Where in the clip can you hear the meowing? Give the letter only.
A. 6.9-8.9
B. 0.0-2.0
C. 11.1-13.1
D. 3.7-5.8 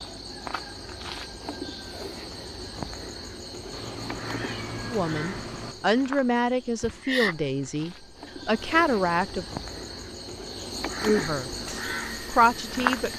D.